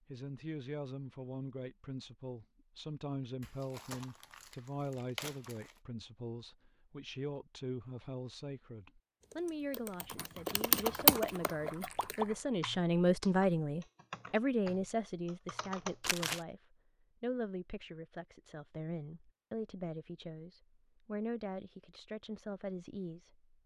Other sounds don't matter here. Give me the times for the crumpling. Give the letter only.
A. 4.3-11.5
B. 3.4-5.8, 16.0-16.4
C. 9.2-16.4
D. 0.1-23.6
B.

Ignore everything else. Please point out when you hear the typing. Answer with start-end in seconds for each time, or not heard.
9.2-16.4.